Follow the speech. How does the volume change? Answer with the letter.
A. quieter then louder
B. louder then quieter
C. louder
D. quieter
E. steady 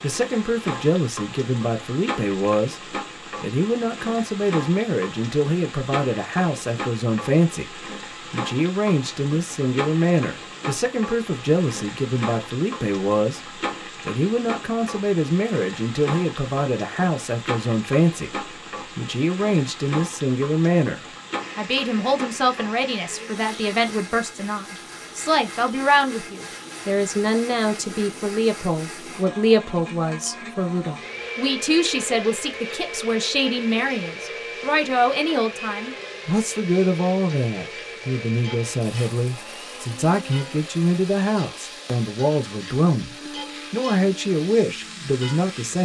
E.